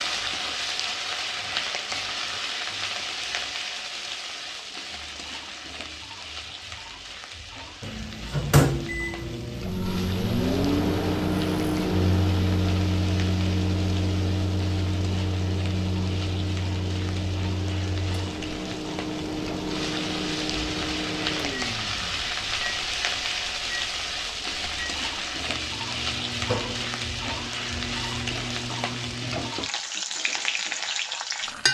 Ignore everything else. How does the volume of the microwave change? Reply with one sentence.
The loudness of the microwave goes down.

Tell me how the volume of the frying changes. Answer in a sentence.
The loudness of the frying goes down, then up.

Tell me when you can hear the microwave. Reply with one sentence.
The microwave can be heard from 7.8 to 29.6 s.